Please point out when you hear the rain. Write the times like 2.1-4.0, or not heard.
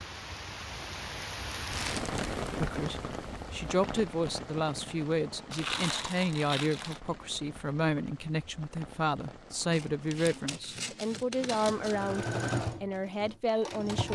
0.0-10.6.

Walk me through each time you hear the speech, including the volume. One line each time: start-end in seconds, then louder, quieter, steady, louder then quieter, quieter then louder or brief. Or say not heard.
2.5-14.1 steady.